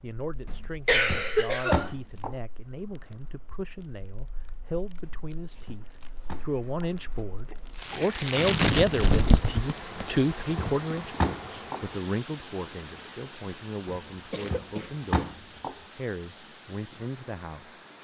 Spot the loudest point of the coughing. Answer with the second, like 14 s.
1 s.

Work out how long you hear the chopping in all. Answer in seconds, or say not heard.
8 s.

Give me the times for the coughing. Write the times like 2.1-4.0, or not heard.
0.8-1.9, 6.7-8.2, 14.3-15.0.